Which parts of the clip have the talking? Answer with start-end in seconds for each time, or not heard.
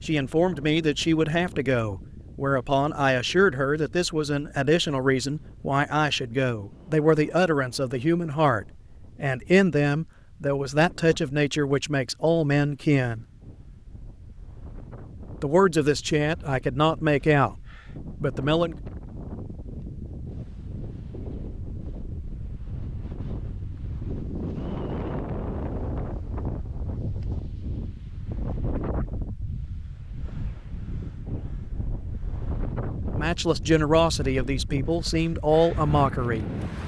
0.0-13.2, 15.4-17.6, 18.2-18.8, 33.1-36.5.